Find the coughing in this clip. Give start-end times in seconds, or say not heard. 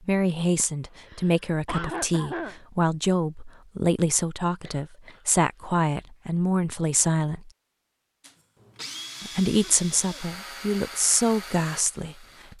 0.6-2.5, 4.6-5.7, 9.6-10.2.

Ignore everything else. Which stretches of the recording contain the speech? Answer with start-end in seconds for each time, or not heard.
0.1-7.5, 9.2-12.5.